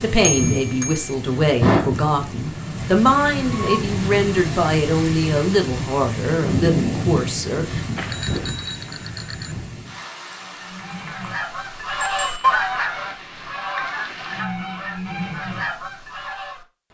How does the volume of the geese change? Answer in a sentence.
The volume of the geese goes up, then down.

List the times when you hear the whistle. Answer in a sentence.
You can't hear the whistle here.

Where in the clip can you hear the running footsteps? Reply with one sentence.
The running footsteps can't be heard in this clip.